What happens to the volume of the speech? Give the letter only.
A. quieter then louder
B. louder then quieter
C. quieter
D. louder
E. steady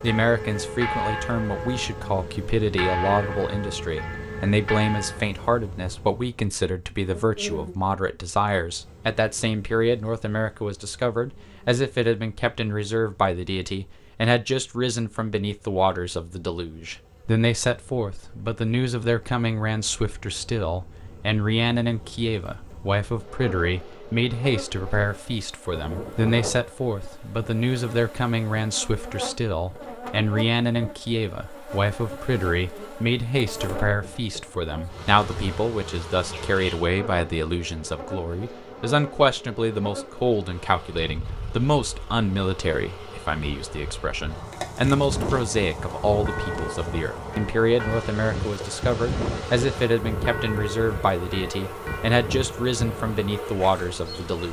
E.